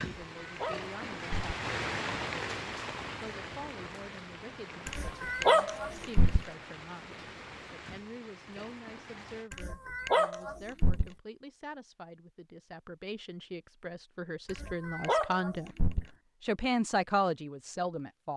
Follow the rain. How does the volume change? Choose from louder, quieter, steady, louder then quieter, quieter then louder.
quieter.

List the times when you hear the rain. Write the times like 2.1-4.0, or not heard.
0.0-9.5.